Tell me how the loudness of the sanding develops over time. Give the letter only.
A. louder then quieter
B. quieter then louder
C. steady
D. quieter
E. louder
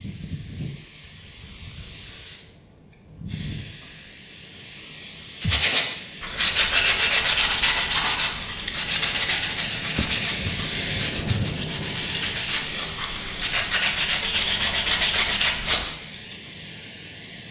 B.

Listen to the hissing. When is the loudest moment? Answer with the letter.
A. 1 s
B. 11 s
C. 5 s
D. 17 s
B.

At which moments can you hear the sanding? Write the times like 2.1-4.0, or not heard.
5.4-15.9.